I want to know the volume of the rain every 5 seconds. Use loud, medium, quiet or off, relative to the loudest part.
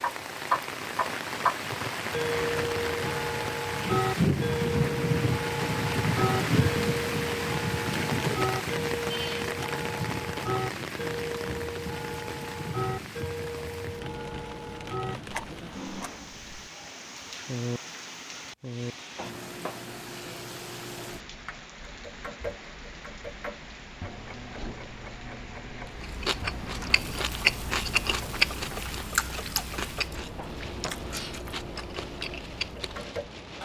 loud, loud, medium, quiet, quiet, quiet, quiet.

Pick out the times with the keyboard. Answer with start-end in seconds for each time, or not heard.
not heard.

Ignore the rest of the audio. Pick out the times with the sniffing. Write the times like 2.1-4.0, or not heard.
not heard.